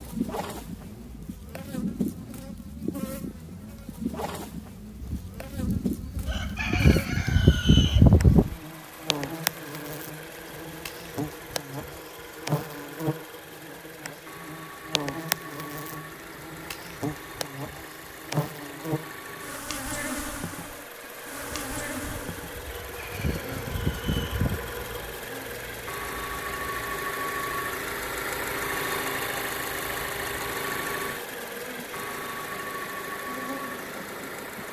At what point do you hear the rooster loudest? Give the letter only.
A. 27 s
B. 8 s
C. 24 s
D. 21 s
B.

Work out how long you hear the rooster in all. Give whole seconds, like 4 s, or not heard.
7 s.